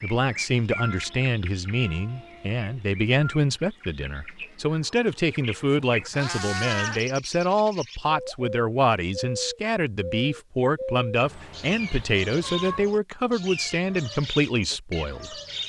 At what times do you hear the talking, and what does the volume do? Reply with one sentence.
The talking can be heard from 0.0 to 15.3 s, at a steady volume.